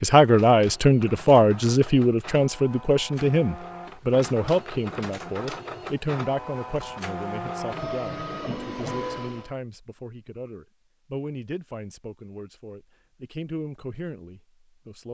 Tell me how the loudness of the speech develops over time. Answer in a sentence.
The volume of the speech goes down.